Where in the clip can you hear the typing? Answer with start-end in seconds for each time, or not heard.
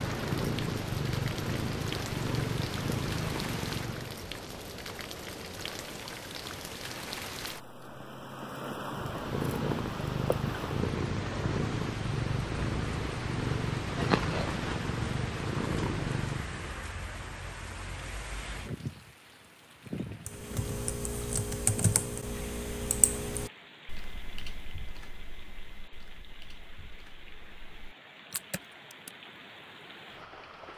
20.2-29.1.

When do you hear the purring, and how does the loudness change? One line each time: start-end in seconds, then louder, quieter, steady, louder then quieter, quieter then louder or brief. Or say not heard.
0.0-4.2 steady
8.8-16.8 steady.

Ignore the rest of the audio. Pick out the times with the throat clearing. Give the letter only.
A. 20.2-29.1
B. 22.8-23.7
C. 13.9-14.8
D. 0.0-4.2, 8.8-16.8
C.